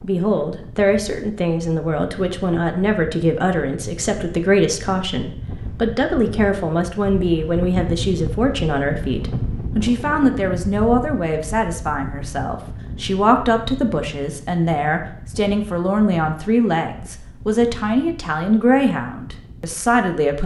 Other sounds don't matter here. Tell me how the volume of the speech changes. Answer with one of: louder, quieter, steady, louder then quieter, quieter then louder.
steady.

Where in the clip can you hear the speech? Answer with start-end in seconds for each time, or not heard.
0.0-20.4.